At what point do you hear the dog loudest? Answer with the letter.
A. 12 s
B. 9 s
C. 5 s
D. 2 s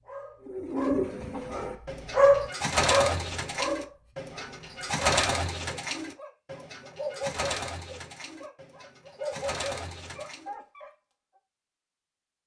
D.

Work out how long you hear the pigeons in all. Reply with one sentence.
You can hear the pigeons for 10 seconds altogether.